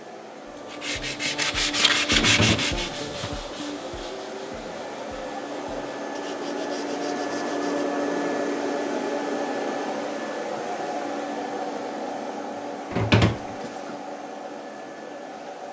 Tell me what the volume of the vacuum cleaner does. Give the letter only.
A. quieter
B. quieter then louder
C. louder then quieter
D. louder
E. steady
C.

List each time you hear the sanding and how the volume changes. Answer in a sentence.
The sanding can be heard from 0.5 to 7.8 s, getting quieter.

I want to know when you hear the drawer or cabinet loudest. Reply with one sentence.
The loudest moment of the drawer or cabinet is at 13 seconds.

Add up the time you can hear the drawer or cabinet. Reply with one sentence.
The drawer or cabinet can be heard for 2 seconds in total.